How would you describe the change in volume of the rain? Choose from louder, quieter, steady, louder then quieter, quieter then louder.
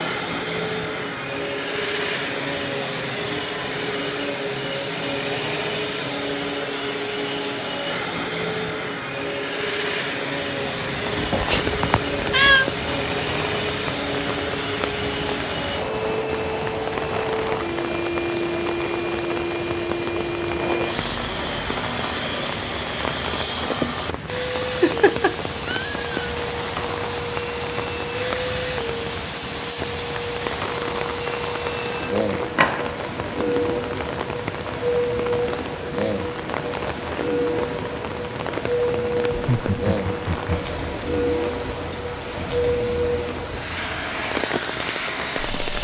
steady.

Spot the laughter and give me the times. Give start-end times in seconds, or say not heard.
39.3-40.9.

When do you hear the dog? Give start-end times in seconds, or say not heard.
not heard.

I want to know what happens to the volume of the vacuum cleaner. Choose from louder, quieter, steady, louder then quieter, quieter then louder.
steady.